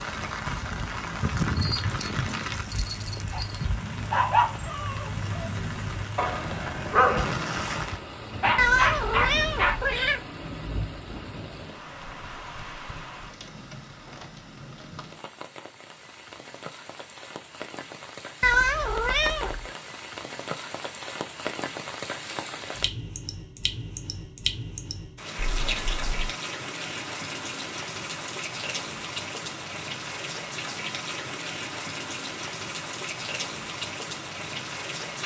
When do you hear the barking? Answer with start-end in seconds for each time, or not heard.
1.2-7.3, 8.4-9.8.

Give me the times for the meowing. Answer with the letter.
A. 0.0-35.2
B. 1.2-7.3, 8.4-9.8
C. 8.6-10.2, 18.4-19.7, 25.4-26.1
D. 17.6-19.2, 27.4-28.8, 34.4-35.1
C.